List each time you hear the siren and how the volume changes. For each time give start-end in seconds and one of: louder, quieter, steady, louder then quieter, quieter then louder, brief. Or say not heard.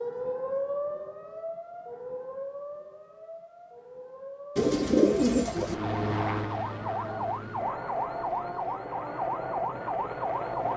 0.0-10.7 quieter then louder.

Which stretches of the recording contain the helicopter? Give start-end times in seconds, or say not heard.
5.5-10.7.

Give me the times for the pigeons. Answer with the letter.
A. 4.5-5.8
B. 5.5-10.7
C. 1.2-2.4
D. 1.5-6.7
A.